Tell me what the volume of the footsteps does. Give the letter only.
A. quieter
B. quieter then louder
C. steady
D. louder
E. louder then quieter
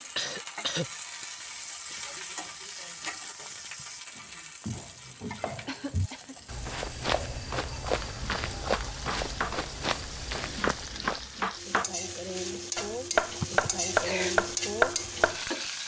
D.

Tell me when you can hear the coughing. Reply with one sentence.
The coughing can be heard from 0.1 to 0.8 s, from 5.7 to 6.3 s and from 13.4 to 14.3 s.